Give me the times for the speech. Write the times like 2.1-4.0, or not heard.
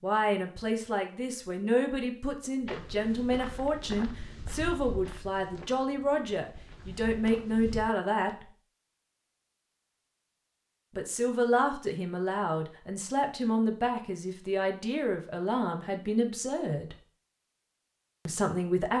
0.0-8.4, 10.9-16.9, 18.2-18.9.